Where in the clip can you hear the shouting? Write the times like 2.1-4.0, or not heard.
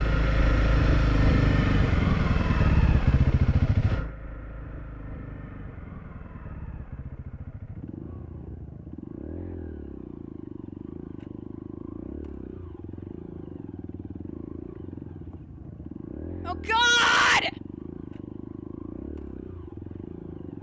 16.4-17.5.